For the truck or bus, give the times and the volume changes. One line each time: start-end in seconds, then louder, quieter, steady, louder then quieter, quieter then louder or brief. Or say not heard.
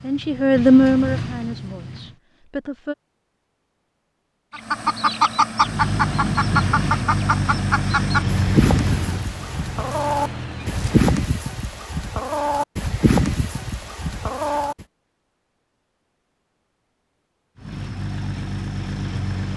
0.0-2.1 brief
5.5-11.1 quieter
17.6-19.5 brief.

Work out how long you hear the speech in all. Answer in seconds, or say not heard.
3 s.